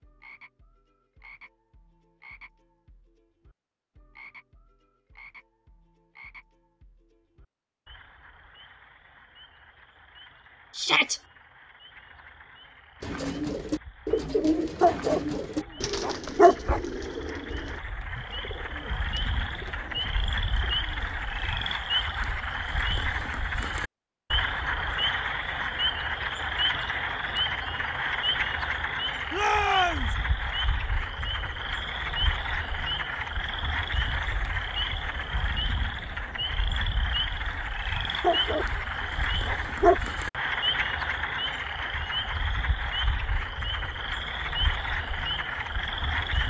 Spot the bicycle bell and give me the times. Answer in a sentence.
You can't hear the bicycle bell here.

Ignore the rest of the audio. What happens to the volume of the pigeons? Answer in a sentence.
The volume of the pigeons goes down.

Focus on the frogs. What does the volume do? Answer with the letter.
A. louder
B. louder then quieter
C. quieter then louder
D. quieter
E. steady
A.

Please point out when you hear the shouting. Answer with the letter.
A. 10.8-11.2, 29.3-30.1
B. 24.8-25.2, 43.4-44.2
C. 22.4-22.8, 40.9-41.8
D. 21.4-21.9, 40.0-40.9
A.